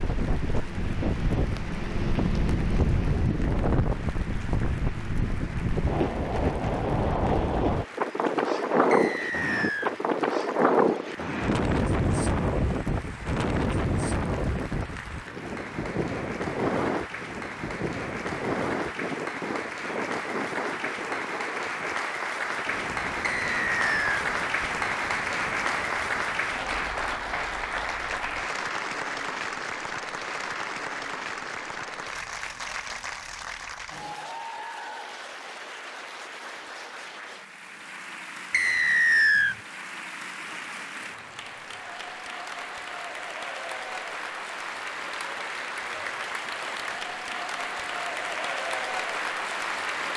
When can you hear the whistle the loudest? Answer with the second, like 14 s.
39 s.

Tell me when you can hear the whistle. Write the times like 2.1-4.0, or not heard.
8.9-9.9, 23.2-24.2, 38.5-39.5.